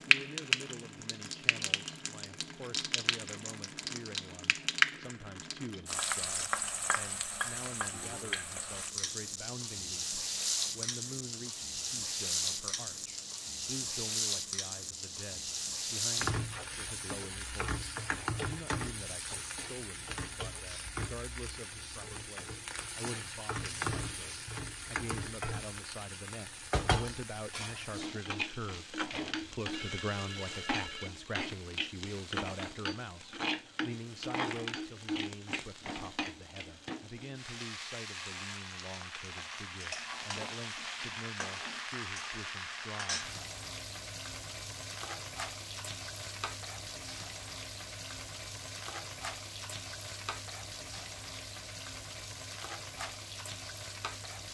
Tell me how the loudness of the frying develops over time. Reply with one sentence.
The volume of the frying goes down.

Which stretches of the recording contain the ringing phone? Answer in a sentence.
The ringing phone can be heard from 7.9 to 8.3 s and from 29.1 to 31.1 s.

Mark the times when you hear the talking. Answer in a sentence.
The talking can be heard from 0.1 to 43.3 s.